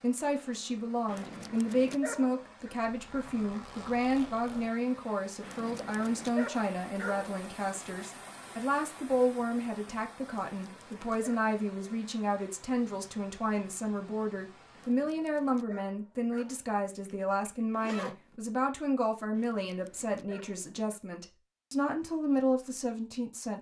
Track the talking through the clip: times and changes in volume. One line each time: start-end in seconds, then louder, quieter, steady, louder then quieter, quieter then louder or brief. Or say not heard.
0.0-23.5 steady.